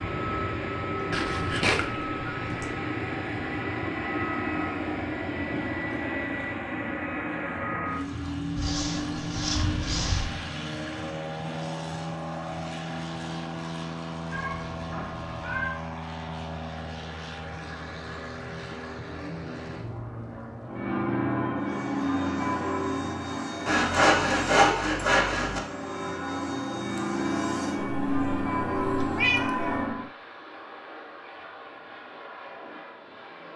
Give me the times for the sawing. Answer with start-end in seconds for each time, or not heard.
8.6-10.3, 23.6-25.6.